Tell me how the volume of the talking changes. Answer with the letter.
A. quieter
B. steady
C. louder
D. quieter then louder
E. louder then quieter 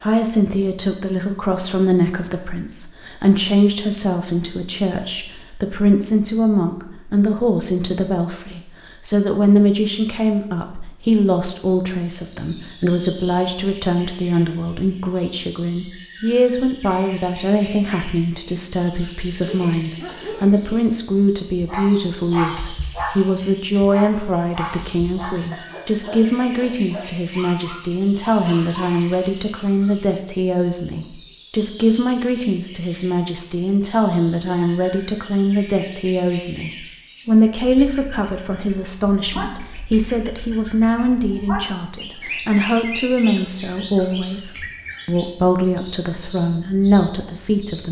B.